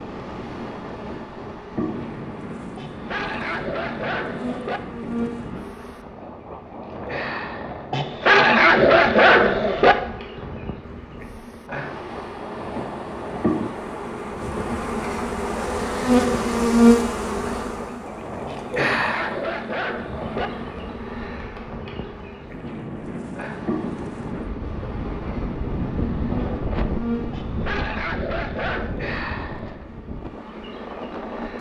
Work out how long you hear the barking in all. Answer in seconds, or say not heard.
8 s.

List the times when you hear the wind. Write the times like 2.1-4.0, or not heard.
0.0-31.5.